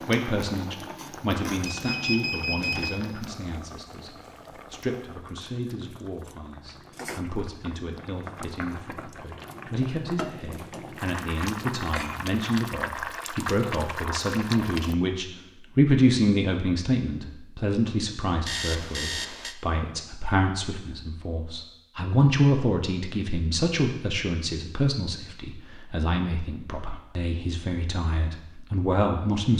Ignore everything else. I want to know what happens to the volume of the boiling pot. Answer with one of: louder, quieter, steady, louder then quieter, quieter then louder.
quieter then louder.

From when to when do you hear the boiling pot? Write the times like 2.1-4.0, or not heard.
0.0-14.9.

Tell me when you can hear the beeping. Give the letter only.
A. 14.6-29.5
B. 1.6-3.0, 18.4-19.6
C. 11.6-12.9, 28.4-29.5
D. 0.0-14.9
B.